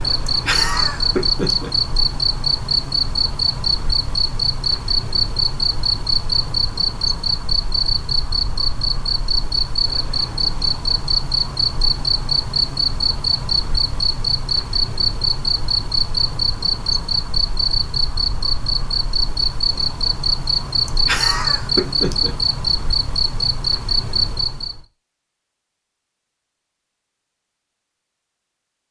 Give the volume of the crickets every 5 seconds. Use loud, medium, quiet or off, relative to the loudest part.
loud, loud, loud, loud, loud, off.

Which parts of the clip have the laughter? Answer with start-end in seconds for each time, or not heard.
0.2-1.7, 20.9-22.4.